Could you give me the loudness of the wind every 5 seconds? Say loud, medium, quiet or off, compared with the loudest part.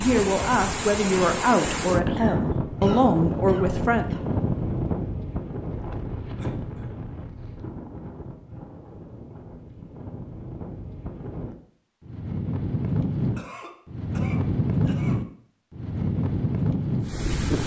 loud, medium, loud, loud.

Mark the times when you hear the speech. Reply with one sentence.
You can hear the speech from 0.0 to 4.0 s.